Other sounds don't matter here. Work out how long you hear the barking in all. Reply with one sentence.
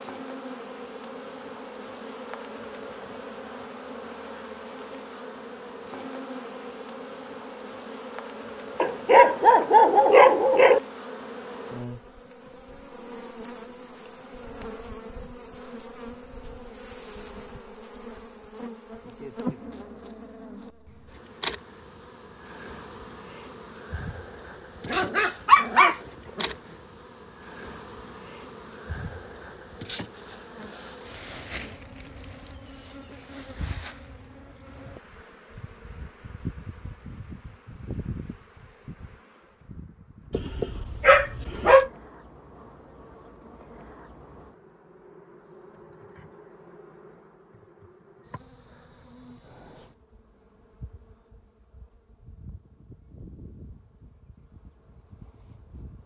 You can hear the barking for 5 seconds altogether.